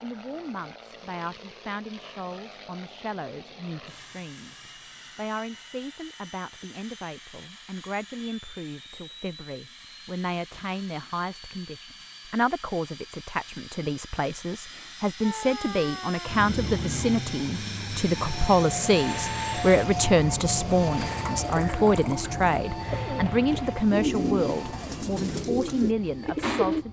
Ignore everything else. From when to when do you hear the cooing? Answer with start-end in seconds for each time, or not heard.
20.9-26.8.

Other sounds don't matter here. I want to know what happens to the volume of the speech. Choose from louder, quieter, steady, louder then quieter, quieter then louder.
louder.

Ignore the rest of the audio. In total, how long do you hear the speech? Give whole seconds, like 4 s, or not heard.
27 s.